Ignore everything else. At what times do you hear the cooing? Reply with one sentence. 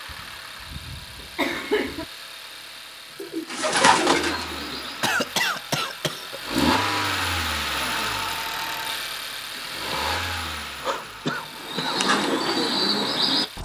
You can hear the cooing from 3.2 to 5.2 s and from 11.6 to 13.4 s.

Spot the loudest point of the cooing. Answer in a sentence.
The loudest moment of the cooing is at 4 seconds.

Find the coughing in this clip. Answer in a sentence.
You can hear the coughing from 0.1 to 2.0 s, from 5.0 to 6.4 s and from 9.6 to 12.0 s.